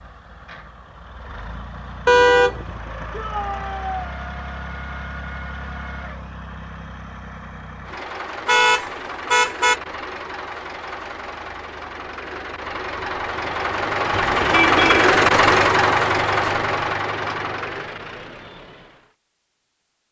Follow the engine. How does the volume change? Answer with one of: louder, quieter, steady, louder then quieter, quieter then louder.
louder.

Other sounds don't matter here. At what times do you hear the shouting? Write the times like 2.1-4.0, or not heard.
3.1-4.1.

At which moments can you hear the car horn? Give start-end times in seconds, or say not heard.
2.0-2.8, 8.4-9.8, 14.1-15.1.